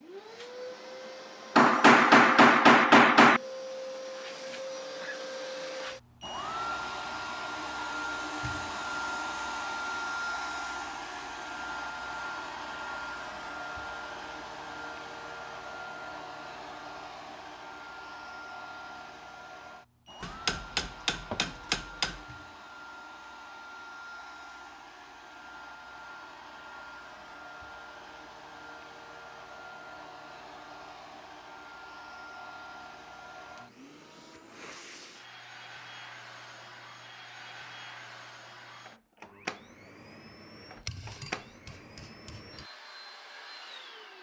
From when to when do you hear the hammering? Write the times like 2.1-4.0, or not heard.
1.6-3.4, 20.2-22.2, 40.8-42.6.